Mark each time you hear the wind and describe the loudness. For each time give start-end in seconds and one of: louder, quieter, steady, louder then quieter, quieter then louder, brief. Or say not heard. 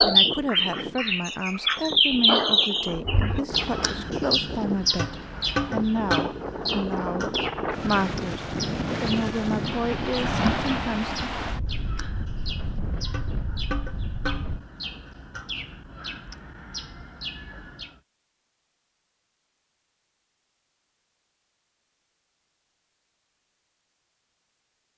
0.0-14.7 louder then quieter.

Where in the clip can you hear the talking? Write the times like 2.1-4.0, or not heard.
0.0-11.4.